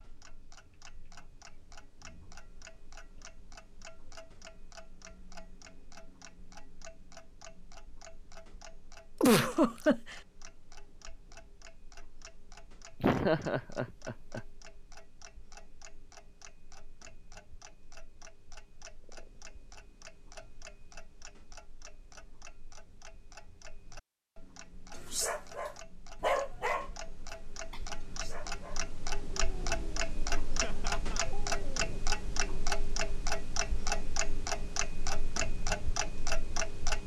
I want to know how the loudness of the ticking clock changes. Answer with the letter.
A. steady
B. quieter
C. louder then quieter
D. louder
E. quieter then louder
D.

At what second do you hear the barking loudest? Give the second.
26 s.